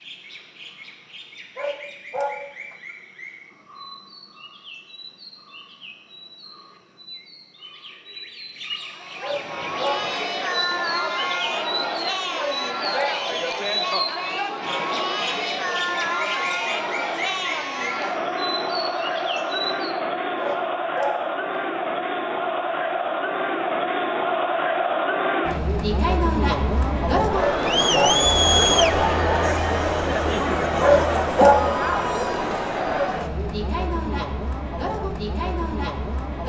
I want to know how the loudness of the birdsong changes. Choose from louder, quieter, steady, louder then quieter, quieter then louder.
louder.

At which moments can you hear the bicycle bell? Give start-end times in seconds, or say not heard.
not heard.